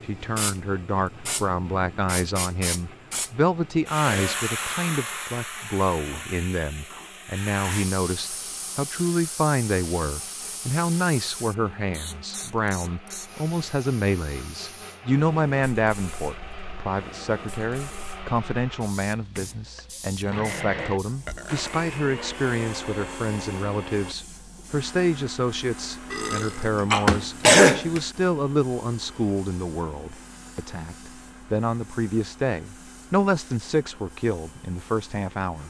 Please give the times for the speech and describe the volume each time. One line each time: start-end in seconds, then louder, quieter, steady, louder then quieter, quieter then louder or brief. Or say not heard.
0.1-35.6 steady.